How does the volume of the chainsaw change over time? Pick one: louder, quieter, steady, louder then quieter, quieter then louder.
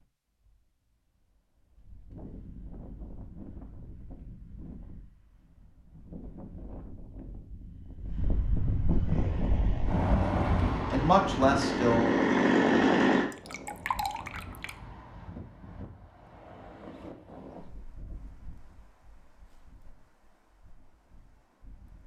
louder.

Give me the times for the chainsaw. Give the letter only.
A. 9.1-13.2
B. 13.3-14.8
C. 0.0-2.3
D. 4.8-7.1
A.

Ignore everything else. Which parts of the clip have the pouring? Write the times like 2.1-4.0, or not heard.
13.3-14.8.